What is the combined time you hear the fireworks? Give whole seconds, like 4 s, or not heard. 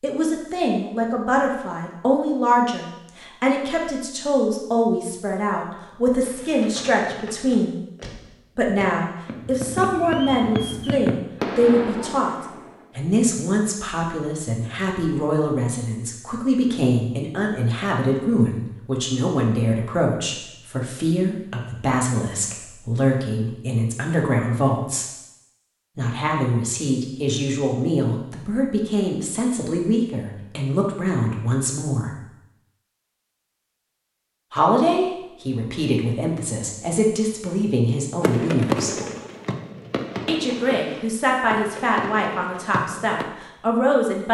12 s.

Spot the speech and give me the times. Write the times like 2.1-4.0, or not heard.
0.0-7.8, 8.6-12.3, 12.9-25.1, 25.9-32.1, 34.5-38.9, 40.2-44.2.